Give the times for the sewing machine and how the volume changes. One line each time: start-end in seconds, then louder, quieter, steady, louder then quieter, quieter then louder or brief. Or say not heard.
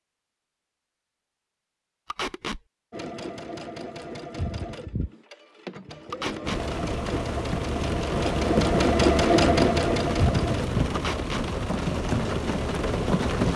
2.9-13.5 louder then quieter.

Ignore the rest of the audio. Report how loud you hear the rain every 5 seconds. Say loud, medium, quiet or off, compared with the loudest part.
off, loud, loud.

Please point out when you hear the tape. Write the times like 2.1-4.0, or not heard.
2.1-2.6, 6.1-6.6, 10.9-11.4.